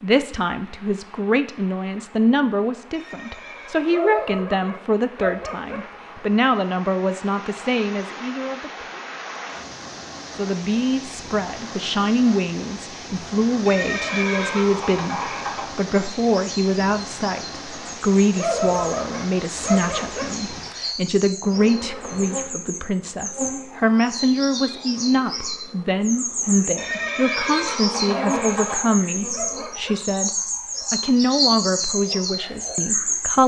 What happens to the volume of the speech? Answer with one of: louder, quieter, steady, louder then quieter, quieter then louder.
steady.